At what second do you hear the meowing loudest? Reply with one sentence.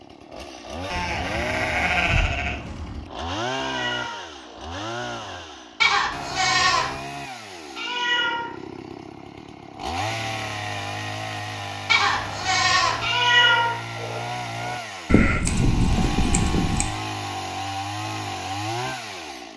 The loudest moment of the meowing is at 13 seconds.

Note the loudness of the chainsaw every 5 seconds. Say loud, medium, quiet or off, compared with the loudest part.
loud, medium, loud, loud.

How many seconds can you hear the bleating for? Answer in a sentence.
You can hear the bleating for 6 seconds altogether.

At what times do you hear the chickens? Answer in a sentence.
You can't hear the chickens here.